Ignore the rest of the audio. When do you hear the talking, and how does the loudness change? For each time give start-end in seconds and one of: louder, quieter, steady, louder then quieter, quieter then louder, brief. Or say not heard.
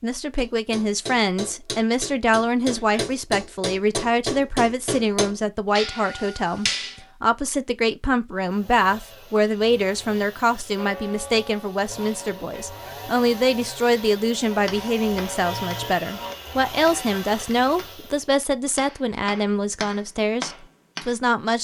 0.0-21.5 steady.